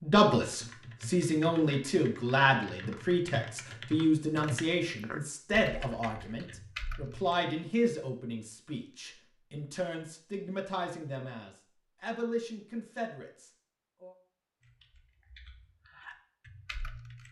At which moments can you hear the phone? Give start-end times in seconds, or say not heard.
not heard.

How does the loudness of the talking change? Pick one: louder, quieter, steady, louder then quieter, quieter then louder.
quieter.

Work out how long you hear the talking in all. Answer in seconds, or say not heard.
14 s.